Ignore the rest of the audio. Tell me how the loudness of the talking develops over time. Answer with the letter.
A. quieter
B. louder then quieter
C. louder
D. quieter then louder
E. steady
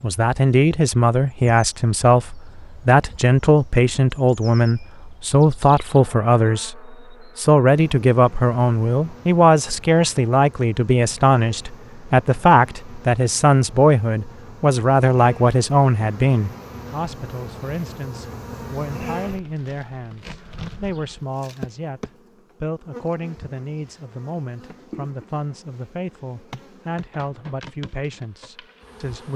A.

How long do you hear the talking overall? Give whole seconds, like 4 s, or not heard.
29 s.